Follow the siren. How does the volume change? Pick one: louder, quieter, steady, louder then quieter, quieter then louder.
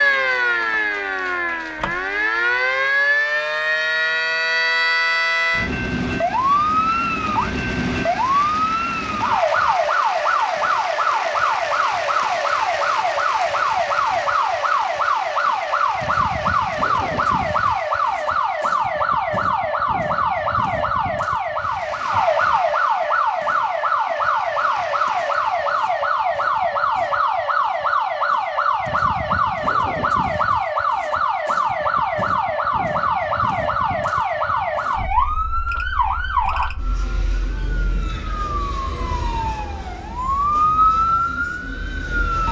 steady.